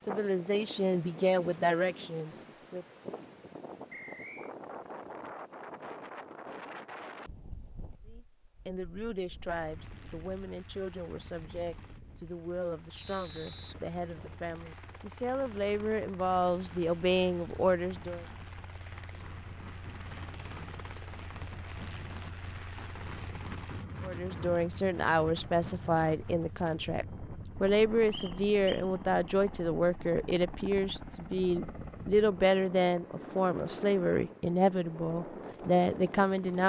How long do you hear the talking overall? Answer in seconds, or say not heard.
26 s.